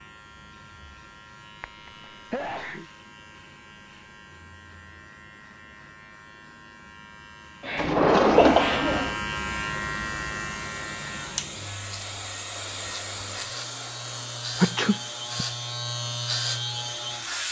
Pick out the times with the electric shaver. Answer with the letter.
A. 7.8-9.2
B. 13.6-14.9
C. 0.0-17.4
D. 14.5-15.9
C.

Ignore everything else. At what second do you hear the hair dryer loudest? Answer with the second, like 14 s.
13 s.